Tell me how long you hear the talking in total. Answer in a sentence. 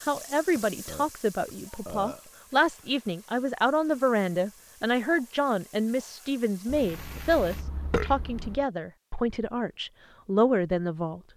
The talking can be heard for 11 seconds in total.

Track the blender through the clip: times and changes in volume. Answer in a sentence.
You can't hear the blender here.